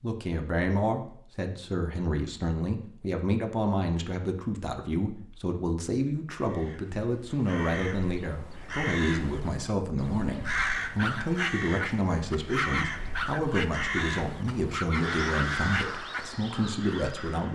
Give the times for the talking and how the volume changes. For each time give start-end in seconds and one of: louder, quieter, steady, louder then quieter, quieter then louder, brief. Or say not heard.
0.0-17.4 steady.